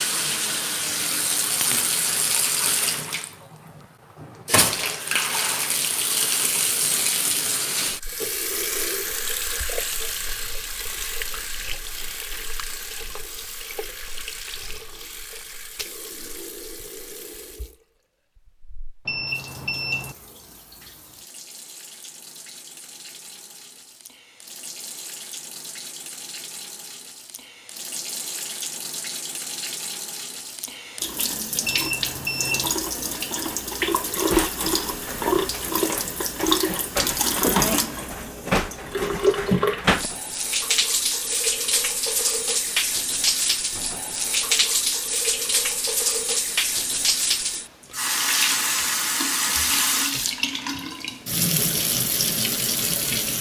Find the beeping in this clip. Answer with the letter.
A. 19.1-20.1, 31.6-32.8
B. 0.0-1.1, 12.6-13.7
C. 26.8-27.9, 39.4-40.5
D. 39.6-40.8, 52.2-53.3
A.